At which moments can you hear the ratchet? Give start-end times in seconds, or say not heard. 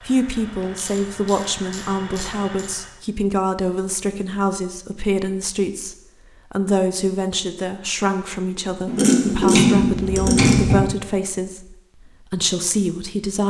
0.3-2.7, 8.8-10.8.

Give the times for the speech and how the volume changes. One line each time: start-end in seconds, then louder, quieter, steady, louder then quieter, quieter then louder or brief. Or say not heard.
0.0-13.4 steady.